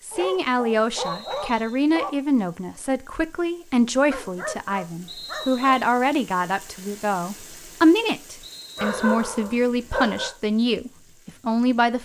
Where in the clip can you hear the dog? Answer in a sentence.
You can hear the dog from 0.1 to 2.1 s, from 4.1 to 5.8 s and from 8.8 to 10.3 s.